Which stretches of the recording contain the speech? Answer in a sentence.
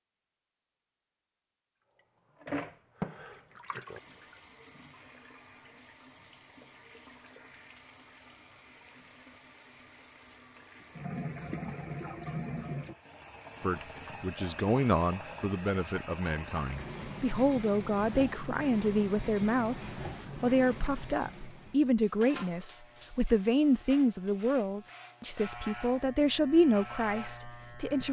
The speech can be heard from 13.6 to 28.0 s.